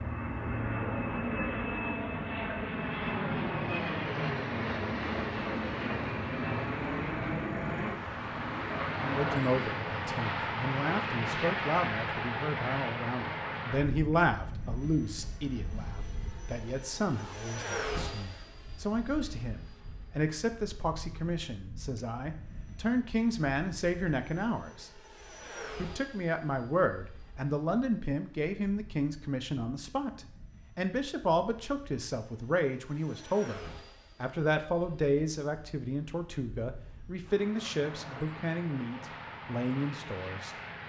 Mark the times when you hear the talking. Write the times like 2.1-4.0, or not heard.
9.0-24.9, 25.8-40.5.